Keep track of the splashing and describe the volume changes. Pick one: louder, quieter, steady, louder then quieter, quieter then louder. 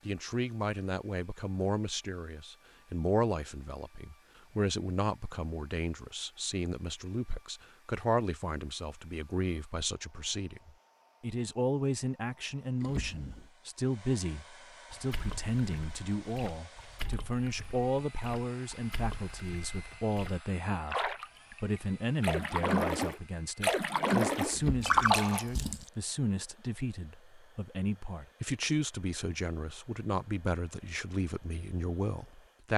louder.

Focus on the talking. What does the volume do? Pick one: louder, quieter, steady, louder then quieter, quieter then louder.
steady.